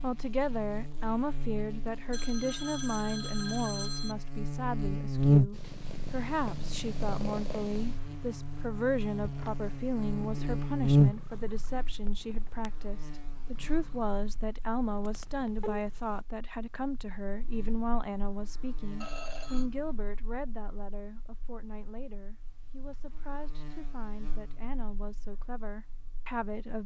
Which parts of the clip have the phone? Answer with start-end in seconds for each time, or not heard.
2.1-4.2, 15.2-15.8, 19.0-19.6.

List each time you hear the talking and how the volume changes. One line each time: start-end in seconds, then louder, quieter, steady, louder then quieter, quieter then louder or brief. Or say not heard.
0.0-26.8 quieter.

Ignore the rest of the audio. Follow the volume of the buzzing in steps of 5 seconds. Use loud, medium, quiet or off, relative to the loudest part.
medium, loud, loud, quiet, quiet, quiet.